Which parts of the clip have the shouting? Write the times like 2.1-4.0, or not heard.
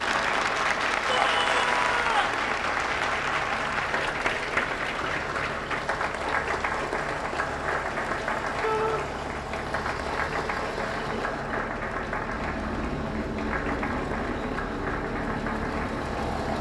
1.1-2.4, 8.6-9.1.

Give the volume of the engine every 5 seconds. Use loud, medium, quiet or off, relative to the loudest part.
medium, medium, loud, loud.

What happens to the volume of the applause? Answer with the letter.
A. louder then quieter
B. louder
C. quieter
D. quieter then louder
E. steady
C.